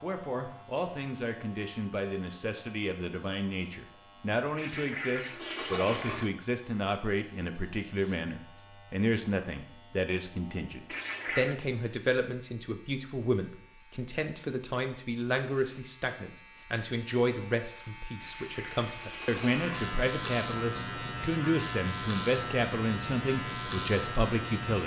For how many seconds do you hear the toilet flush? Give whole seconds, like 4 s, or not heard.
4 s.